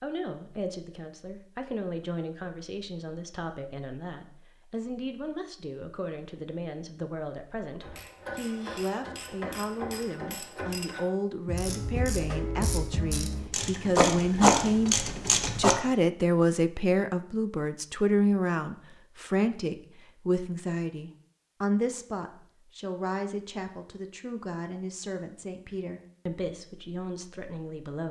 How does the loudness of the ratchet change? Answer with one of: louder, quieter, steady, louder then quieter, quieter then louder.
louder.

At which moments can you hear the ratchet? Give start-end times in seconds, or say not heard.
7.8-15.8.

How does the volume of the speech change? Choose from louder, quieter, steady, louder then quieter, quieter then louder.
louder then quieter.